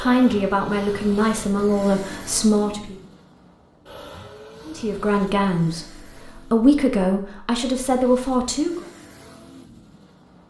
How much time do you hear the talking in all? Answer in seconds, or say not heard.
7 s.